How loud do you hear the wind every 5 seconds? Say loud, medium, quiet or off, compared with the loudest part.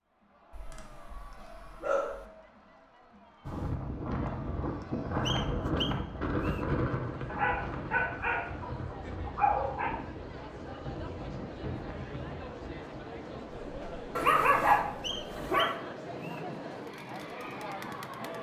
loud, loud, medium, quiet.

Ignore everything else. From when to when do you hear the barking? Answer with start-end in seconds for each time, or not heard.
0.5-2.2, 7.2-9.9, 14.2-15.7.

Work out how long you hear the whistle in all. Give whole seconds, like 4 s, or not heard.
3 s.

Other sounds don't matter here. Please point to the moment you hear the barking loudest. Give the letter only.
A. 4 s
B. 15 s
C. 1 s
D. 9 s
B.